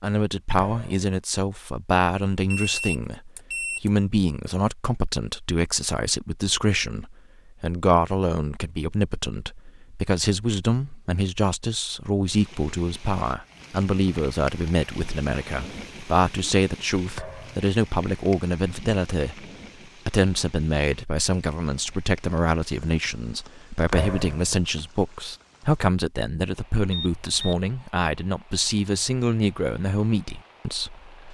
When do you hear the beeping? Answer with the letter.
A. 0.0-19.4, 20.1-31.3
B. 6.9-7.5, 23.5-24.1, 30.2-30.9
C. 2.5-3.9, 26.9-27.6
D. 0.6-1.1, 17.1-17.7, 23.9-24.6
C.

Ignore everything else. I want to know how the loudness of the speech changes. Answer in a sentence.
The loudness of the speech stays about the same.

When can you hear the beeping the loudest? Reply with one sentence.
The loudest moment of the beeping is at 3 seconds.